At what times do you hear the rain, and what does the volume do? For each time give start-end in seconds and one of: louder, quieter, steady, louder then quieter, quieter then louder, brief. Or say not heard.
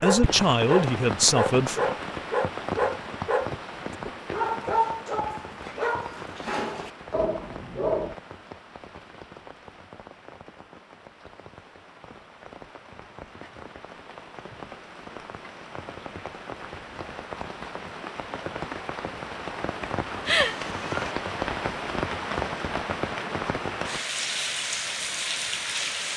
0.0-26.1 quieter then louder.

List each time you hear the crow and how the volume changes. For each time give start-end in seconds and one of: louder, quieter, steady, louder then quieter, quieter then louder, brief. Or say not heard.
not heard.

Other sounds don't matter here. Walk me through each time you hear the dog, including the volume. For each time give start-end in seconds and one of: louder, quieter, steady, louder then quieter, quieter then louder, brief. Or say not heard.
0.0-8.2 quieter.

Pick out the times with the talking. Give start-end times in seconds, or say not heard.
0.0-1.9.